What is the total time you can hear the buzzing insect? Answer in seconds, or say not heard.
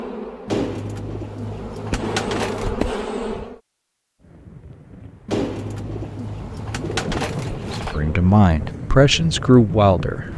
5 s.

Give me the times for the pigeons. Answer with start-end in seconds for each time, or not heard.
0.5-2.9, 5.2-8.0.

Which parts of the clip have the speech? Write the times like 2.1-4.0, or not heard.
7.8-10.2.